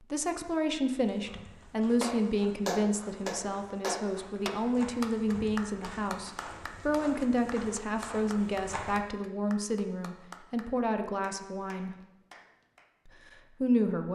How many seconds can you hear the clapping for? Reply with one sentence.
You can hear the clapping for 11 seconds altogether.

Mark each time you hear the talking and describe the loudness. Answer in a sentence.
You can hear the talking from 0.0 to 11.9 s, at a steady volume; and briefly from 13.1 to 14.1 s.